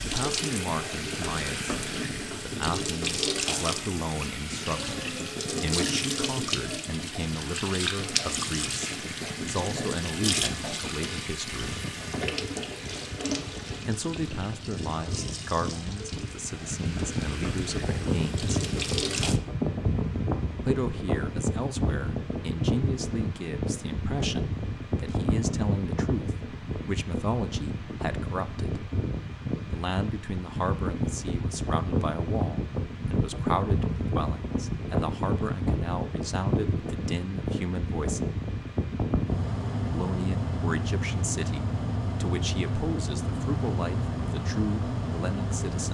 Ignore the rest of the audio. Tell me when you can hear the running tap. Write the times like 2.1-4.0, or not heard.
0.0-19.4.